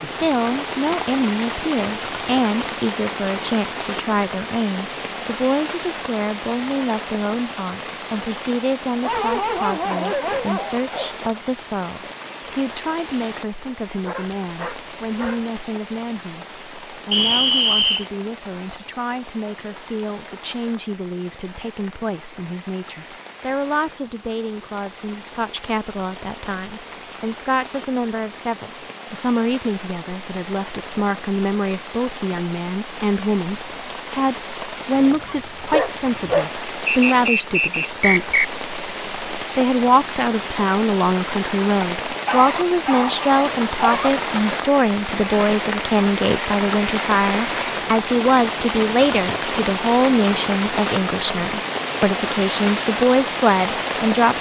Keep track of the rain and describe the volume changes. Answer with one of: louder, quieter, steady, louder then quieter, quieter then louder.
quieter then louder.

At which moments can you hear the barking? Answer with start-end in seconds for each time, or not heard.
9.0-11.3, 14.1-15.5, 35.0-36.5, 42.1-44.1.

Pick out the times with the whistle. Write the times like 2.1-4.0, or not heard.
17.1-18.1, 36.9-38.5.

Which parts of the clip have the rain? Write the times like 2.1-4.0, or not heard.
0.0-54.3.